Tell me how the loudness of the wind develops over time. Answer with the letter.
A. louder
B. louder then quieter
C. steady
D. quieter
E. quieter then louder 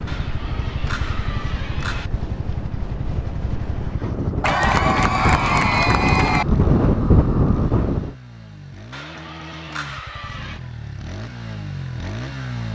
A.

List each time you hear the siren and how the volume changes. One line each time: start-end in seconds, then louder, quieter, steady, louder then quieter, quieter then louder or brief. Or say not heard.
not heard.